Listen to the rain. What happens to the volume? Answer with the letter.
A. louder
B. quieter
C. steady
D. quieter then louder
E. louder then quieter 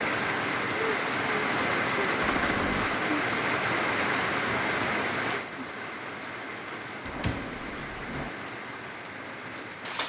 B.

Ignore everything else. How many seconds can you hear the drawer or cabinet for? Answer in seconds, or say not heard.
2 s.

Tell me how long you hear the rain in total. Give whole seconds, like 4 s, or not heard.
10 s.